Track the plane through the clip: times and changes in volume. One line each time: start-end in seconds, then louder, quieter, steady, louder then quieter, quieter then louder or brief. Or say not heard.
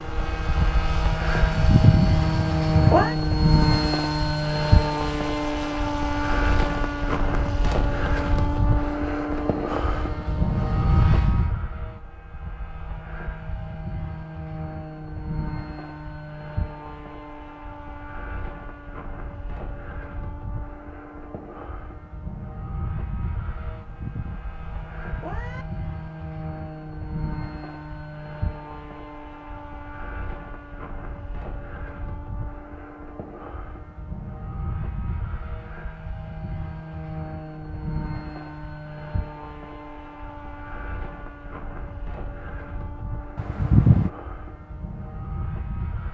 0.0-46.0 quieter.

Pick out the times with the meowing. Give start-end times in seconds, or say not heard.
1.4-3.1, 23.7-25.6, 43.4-44.1.